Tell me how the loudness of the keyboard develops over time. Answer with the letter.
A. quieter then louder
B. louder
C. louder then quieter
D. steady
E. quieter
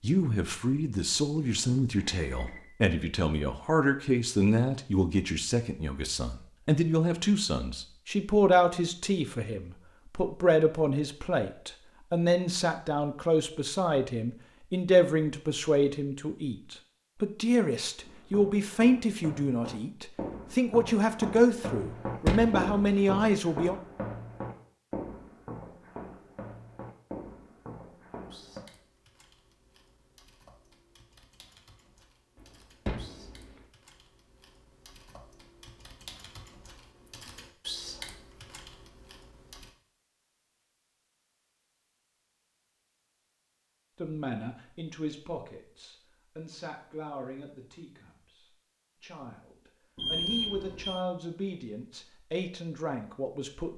B.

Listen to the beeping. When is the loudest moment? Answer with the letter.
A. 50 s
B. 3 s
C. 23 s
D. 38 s
A.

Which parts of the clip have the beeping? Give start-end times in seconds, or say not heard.
1.9-2.6, 50.0-51.0.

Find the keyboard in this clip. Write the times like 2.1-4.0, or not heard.
28.3-39.8.